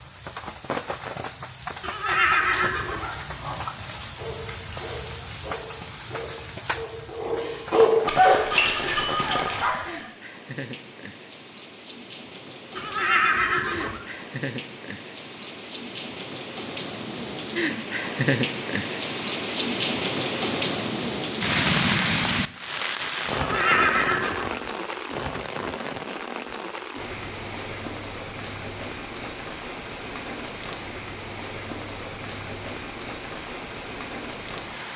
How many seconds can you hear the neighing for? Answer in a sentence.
You can hear the neighing for 4 seconds altogether.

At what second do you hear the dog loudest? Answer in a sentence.
The volume of the dog peaks at 8 seconds.